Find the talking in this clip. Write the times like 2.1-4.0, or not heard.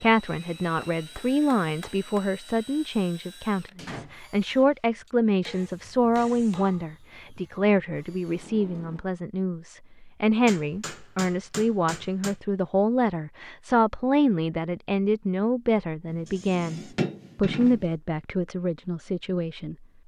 0.0-19.8.